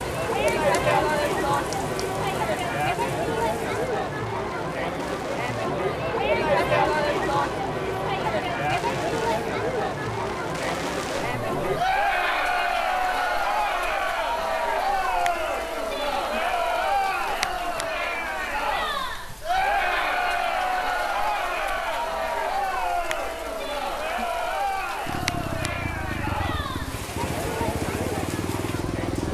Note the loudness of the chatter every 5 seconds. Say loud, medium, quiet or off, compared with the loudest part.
loud, loud, loud, loud, loud, medium.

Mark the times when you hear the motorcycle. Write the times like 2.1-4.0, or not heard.
25.1-29.2.